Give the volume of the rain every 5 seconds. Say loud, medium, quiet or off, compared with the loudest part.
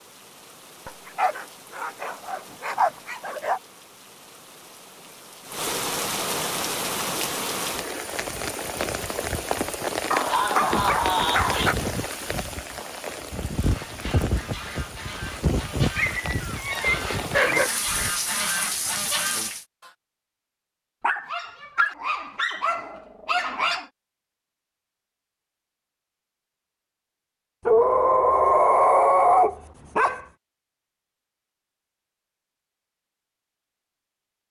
quiet, loud, loud, loud, off, off, off.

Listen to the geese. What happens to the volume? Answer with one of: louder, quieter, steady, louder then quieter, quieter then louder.
louder.